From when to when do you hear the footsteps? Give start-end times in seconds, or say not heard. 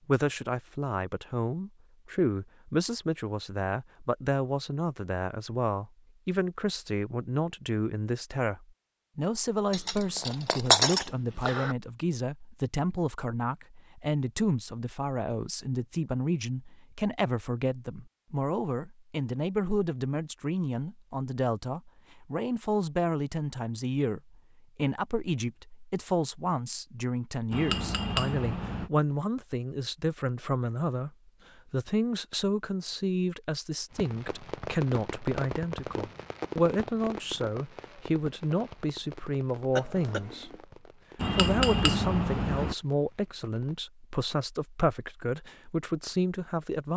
not heard.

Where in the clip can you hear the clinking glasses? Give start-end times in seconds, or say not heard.
9.7-11.8, 27.5-28.9, 41.1-42.8.